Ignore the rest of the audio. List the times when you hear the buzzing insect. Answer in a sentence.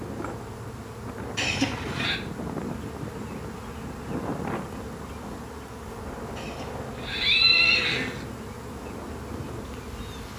The buzzing insect can be heard from 0.0 to 10.3 s.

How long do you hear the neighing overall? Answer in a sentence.
You can hear the neighing for 3 seconds altogether.